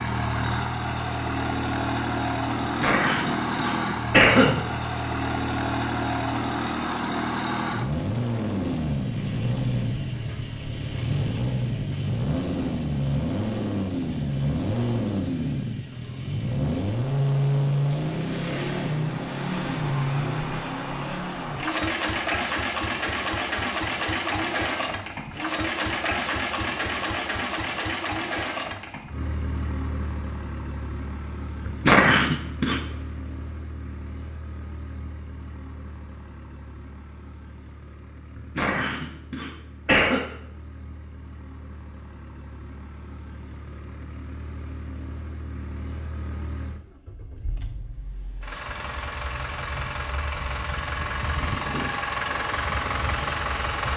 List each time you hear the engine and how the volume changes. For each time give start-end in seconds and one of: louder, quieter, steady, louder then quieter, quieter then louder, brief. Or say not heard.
0.0-53.9 quieter then louder.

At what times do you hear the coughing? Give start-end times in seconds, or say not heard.
2.6-4.6, 31.6-32.8, 38.4-40.2.